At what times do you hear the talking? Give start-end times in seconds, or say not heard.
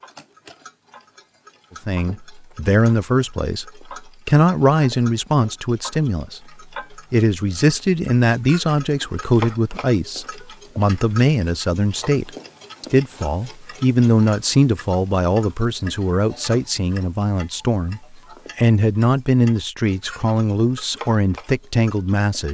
1.9-22.4.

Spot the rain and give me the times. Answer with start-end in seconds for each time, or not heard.
not heard.